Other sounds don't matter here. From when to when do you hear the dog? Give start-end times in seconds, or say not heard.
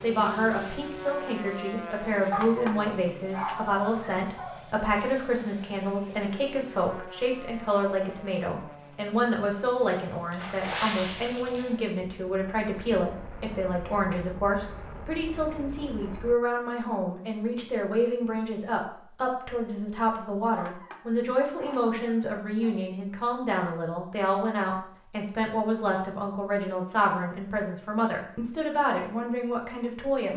2.3-4.6, 20.6-22.9.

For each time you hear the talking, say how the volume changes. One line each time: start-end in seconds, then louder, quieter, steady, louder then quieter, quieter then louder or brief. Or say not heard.
0.0-30.3 steady.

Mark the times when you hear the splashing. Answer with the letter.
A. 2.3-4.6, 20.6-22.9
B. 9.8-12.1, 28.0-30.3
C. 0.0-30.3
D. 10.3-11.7
D.